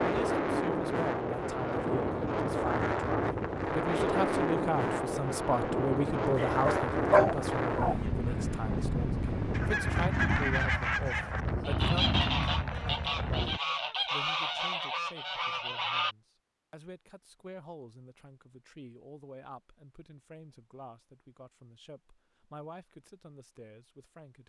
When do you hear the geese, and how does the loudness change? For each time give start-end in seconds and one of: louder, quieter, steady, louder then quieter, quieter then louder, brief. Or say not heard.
9.5-16.1 steady.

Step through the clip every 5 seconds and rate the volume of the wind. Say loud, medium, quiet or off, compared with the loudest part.
loud, loud, loud, off, off.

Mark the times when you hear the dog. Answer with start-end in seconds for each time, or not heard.
6.3-8.0.